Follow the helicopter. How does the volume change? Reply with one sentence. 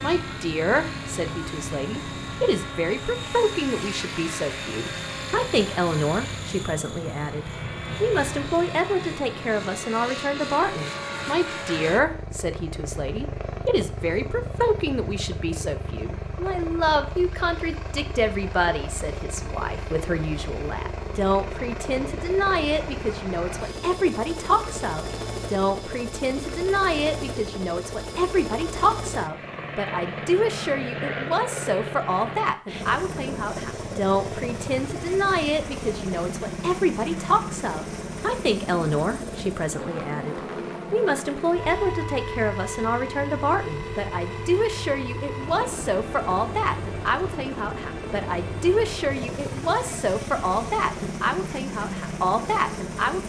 The volume of the helicopter stays about the same.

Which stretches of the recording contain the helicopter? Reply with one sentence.
You can hear the helicopter from 0.0 to 53.2 s.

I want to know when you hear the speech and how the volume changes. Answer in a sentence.
The speech can be heard from 0.0 to 53.2 s, at a steady volume.